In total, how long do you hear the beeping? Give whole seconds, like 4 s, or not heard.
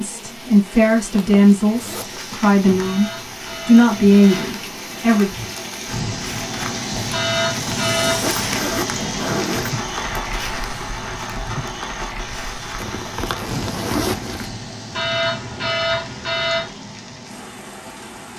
5 s.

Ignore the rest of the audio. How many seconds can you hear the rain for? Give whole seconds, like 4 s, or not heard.
18 s.